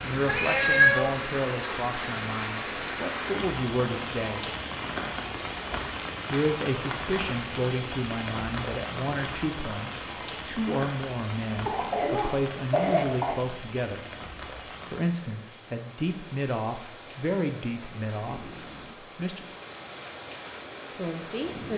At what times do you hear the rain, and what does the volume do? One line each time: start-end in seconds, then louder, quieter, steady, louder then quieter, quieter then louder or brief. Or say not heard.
0.0-21.7 quieter.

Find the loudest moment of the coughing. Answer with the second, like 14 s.
13 s.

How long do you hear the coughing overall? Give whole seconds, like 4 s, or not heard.
2 s.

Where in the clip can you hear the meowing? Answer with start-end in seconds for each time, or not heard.
0.2-1.1.